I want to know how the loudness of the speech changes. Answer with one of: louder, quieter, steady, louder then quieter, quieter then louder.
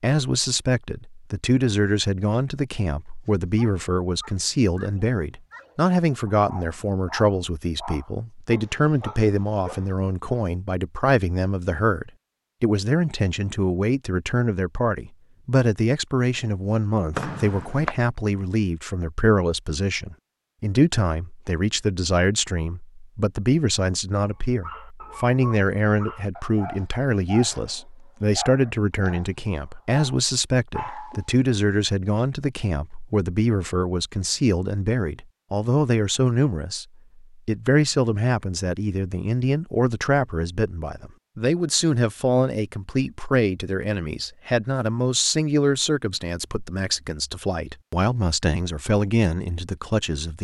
steady.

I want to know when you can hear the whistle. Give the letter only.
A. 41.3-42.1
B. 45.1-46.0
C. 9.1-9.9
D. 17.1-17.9
D.